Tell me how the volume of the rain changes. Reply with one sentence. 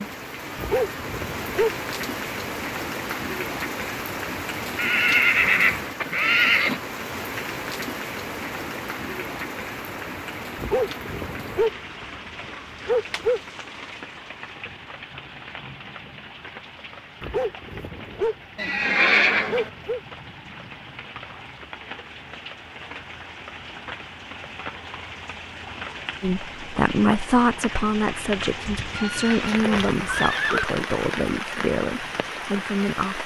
The loudness of the rain goes down, then up.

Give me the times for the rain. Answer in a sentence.
The rain can be heard from 0.0 to 33.2 s.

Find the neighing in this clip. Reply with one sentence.
The neighing can be heard from 4.8 to 6.8 s, from 18.6 to 19.7 s and from 28.6 to 30.6 s.